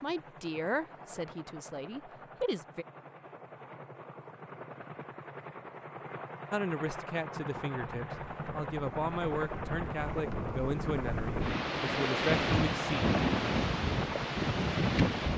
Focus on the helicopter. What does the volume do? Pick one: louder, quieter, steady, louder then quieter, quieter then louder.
louder.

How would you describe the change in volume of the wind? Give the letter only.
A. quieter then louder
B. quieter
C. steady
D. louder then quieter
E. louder
E.